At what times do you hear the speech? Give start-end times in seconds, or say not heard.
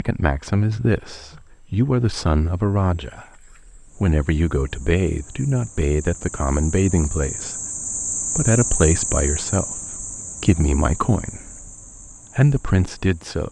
0.0-7.5, 8.3-11.7, 12.3-13.4.